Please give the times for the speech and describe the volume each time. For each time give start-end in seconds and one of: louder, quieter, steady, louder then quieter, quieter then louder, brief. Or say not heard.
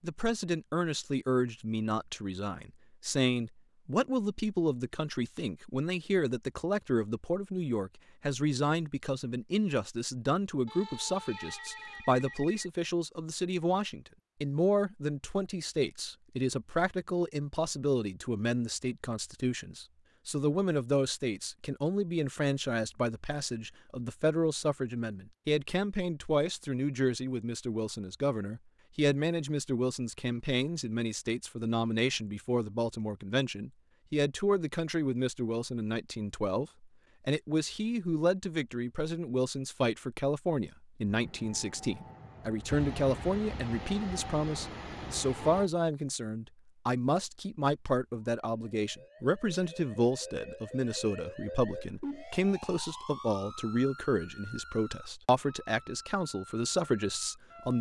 0.0-57.7 steady.